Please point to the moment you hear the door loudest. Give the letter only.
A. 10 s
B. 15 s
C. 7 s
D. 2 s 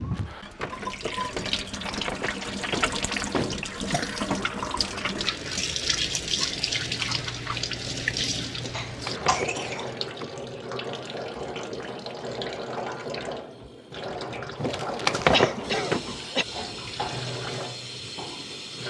B.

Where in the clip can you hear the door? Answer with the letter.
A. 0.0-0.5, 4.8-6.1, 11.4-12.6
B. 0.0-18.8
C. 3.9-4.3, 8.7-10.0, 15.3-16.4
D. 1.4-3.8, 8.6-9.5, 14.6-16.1
D.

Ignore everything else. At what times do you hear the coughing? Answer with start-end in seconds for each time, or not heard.
3.9-4.3, 8.7-10.0, 15.3-16.4.